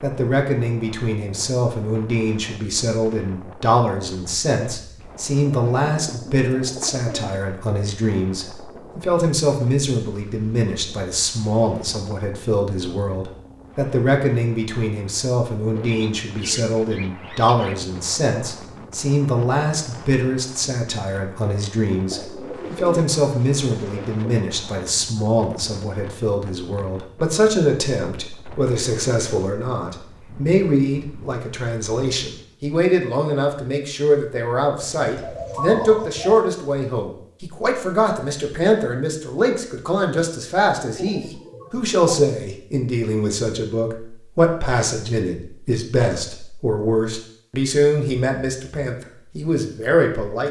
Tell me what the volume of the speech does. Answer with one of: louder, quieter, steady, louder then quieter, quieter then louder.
steady.